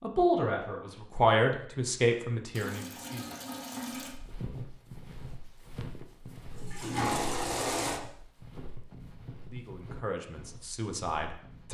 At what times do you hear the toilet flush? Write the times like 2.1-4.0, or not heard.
2.5-4.2, 6.5-8.0.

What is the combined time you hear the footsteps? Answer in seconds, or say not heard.
8 s.